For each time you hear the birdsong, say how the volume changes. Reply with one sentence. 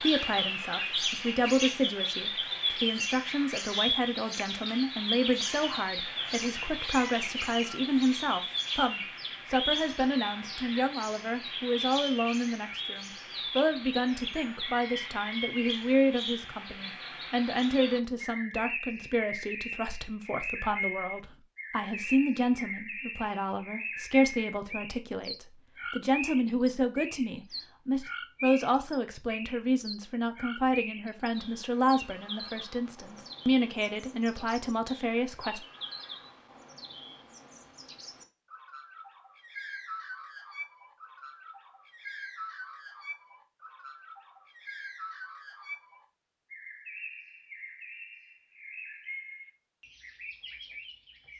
The birdsong can be heard from 0.0 to 51.3 s, getting quieter.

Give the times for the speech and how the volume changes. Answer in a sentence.
You can hear the speech from 0.0 to 35.6 s, at a steady volume.